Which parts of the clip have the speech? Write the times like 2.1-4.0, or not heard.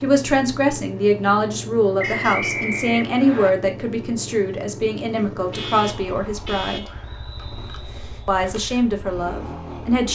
0.0-6.9, 8.2-10.1.